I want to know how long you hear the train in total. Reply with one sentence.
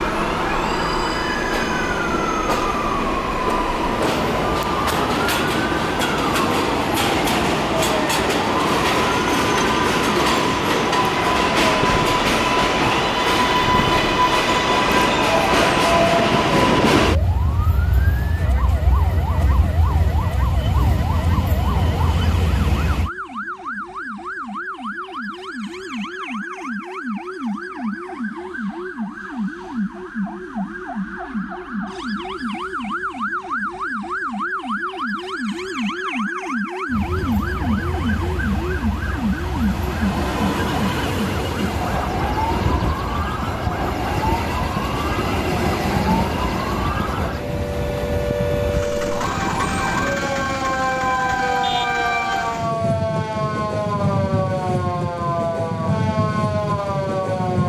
The train can be heard for 44 seconds in total.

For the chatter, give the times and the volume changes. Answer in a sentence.
You can't hear the chatter here.